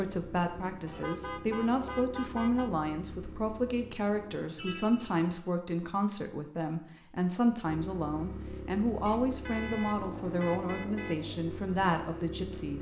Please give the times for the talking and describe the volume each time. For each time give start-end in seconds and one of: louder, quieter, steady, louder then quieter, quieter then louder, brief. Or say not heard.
0.0-12.7 steady.